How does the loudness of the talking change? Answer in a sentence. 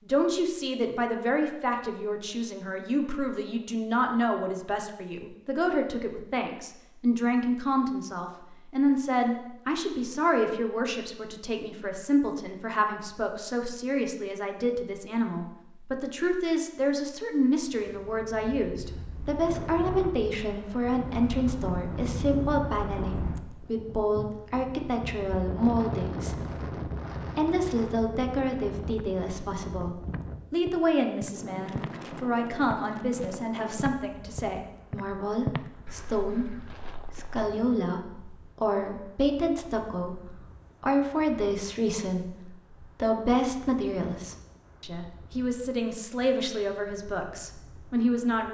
The volume of the talking stays about the same.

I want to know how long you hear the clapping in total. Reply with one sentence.
You can't hear the clapping here.